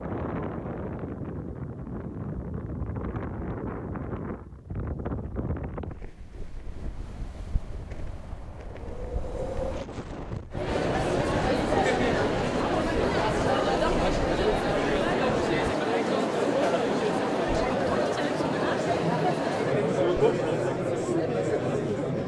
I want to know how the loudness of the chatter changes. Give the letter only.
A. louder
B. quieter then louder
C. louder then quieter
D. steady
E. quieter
D.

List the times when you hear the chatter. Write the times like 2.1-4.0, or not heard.
10.5-22.2.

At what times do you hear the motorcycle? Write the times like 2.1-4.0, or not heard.
not heard.